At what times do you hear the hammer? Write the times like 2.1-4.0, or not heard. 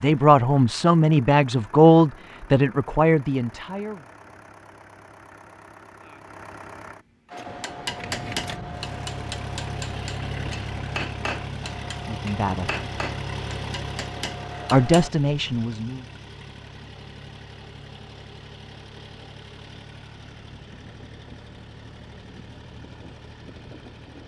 7.3-15.1.